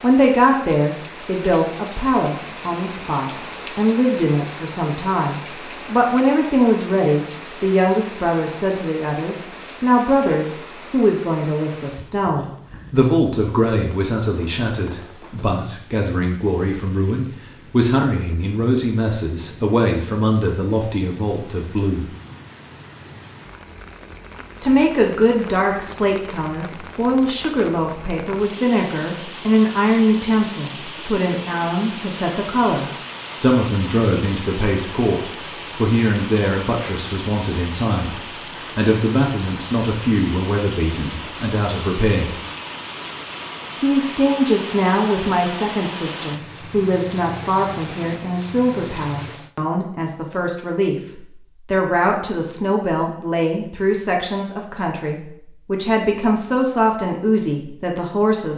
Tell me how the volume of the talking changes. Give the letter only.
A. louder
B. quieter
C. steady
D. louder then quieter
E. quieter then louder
C.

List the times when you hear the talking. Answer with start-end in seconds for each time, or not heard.
0.0-22.1, 24.6-42.4, 43.8-58.5.